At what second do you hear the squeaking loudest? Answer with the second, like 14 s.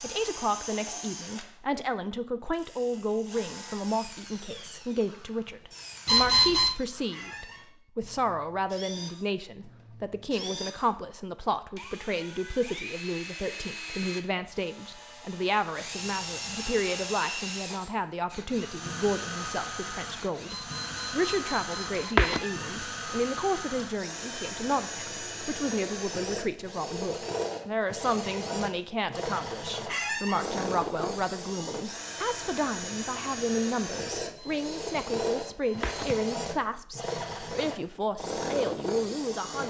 30 s.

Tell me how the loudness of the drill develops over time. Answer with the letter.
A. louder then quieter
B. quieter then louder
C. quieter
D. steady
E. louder
E.